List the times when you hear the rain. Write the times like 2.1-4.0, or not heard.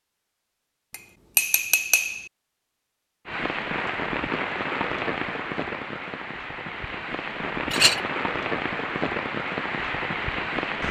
3.2-10.8.